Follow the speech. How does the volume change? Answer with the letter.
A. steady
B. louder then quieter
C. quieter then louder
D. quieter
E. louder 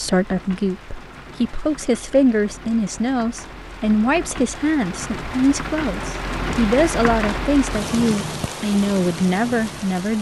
A.